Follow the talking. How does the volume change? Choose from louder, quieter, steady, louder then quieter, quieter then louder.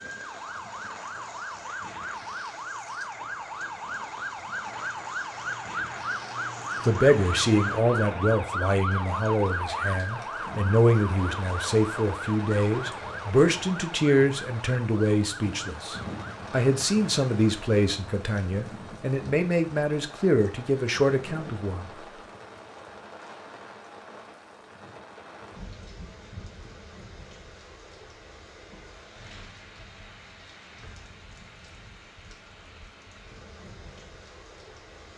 steady.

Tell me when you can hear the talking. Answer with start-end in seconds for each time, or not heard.
6.8-21.9.